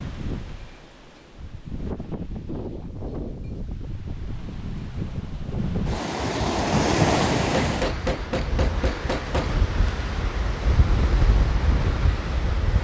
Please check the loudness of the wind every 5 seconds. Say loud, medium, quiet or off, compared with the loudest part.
medium, loud, loud.